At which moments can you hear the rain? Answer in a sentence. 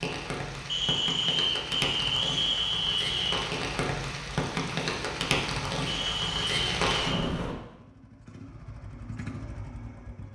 You can hear the rain from 0.0 to 7.5 s.